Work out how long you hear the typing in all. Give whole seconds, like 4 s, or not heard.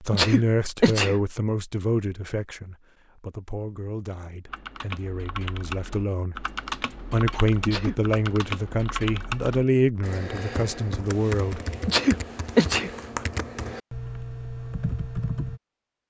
11 s.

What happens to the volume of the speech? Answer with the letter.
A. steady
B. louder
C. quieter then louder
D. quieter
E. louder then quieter
C.